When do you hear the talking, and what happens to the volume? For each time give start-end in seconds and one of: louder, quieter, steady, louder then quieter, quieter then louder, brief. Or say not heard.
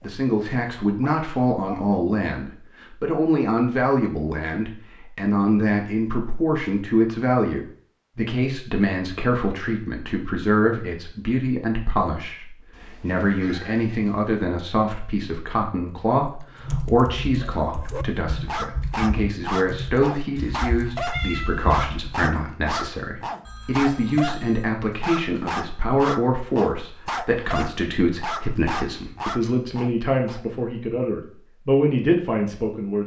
0.0-33.0 steady.